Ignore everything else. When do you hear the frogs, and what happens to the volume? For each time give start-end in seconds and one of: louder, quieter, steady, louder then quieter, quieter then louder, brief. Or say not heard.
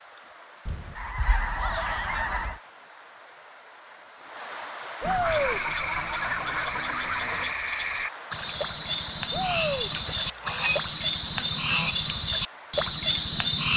5.2-13.7 louder.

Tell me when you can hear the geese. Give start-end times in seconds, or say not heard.
0.7-2.6, 5.0-7.5, 9.9-11.9.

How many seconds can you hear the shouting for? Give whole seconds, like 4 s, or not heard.
2 s.